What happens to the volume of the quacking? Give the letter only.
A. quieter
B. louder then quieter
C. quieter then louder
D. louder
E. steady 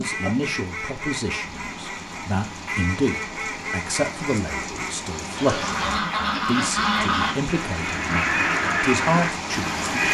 D.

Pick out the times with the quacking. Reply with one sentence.
The quacking can be heard from 0.0 to 10.0 s.